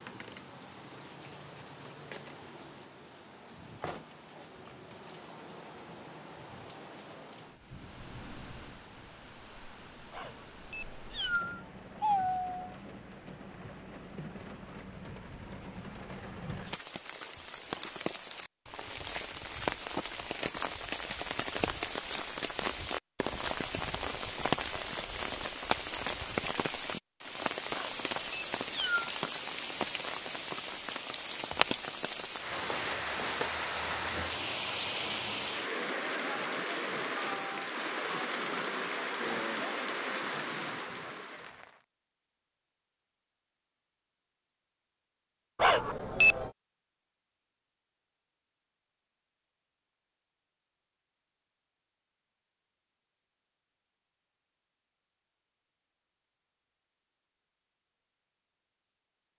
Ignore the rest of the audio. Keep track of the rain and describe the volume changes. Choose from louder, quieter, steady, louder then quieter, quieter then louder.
louder.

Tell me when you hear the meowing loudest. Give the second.
46 s.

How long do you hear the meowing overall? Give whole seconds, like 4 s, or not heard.
5 s.